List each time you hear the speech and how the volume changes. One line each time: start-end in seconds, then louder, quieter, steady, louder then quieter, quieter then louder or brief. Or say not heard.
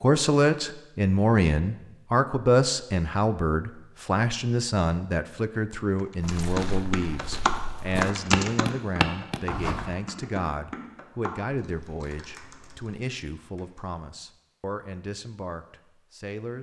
0.0-16.5 quieter.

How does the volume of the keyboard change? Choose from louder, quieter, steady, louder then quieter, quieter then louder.
quieter.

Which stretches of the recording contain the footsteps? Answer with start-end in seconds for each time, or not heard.
6.2-9.9.